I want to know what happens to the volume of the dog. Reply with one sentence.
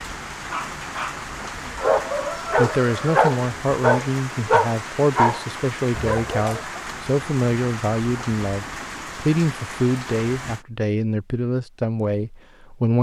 The loudness of the dog goes up, then down.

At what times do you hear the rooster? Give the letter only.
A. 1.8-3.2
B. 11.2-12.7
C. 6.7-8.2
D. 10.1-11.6
A.